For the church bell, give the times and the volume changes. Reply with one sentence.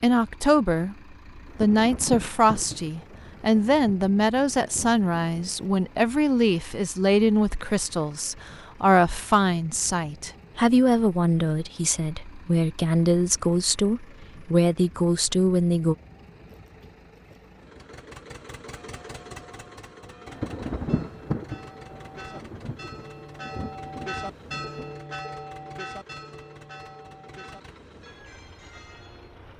The church bell can be heard from 18.6 to 29.4 s, getting louder then quieter.